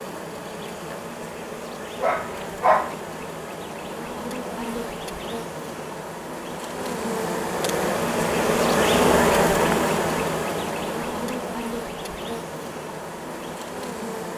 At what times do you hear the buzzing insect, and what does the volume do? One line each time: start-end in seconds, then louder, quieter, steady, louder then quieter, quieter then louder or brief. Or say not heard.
0.0-14.3 louder then quieter.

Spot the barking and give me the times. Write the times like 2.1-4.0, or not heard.
2.0-3.0.